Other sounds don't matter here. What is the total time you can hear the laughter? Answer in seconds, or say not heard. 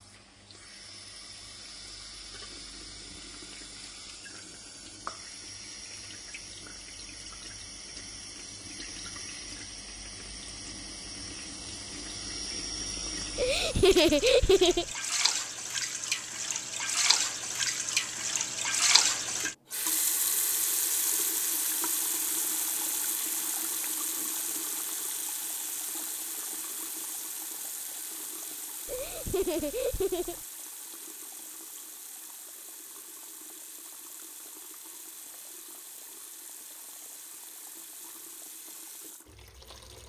3 s.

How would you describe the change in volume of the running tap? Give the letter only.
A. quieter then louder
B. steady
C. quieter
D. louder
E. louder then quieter
E.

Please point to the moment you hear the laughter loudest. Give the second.
14 s.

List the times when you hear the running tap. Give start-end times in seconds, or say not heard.
0.0-40.0.